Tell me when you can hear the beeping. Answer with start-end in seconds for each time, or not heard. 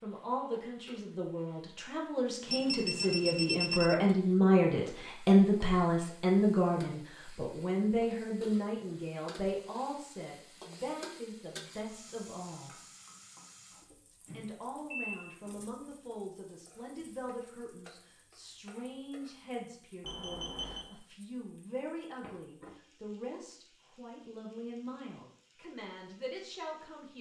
2.5-4.0, 14.2-15.6, 20.1-20.9.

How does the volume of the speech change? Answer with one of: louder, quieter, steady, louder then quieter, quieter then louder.
quieter.